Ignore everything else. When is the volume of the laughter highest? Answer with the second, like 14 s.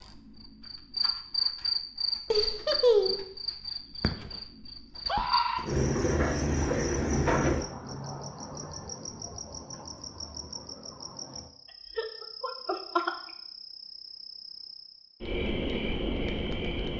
3 s.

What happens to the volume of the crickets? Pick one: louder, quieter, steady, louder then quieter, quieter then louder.
quieter then louder.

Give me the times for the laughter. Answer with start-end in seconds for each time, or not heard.
2.3-3.2, 11.9-13.2.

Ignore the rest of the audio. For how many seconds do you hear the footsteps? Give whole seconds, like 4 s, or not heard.
not heard.